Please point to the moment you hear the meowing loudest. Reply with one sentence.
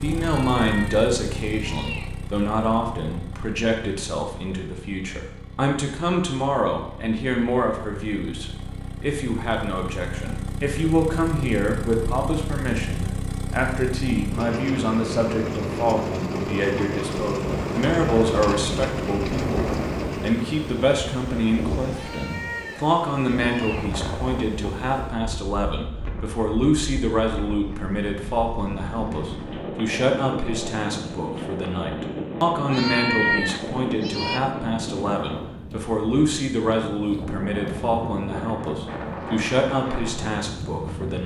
The loudest moment of the meowing is at 33 seconds.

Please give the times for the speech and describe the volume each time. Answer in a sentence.
The speech can be heard from 0.0 to 41.2 s, at a steady volume.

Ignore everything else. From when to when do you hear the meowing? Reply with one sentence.
The meowing can be heard from 0.1 to 2.1 s, from 21.9 to 23.9 s and from 32.6 to 34.4 s.